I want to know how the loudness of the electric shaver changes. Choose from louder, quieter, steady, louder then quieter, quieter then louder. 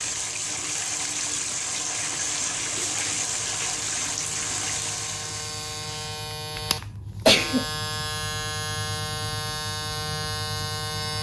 louder.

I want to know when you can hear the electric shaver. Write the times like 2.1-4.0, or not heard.
0.0-11.1.